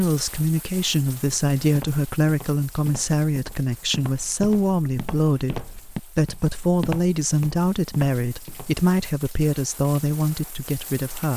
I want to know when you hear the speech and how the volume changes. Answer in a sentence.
You can hear the speech from 0.0 to 11.3 s, at a steady volume.